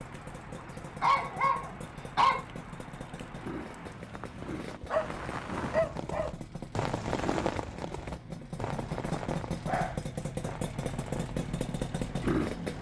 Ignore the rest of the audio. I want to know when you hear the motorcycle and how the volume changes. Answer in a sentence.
The motorcycle can be heard from 0.0 to 12.7 s, getting louder.